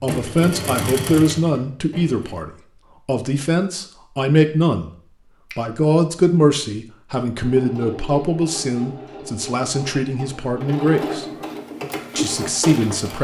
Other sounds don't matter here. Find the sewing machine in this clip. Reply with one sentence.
The sewing machine can be heard from 0.0 to 2.4 s and from 7.3 to 13.1 s.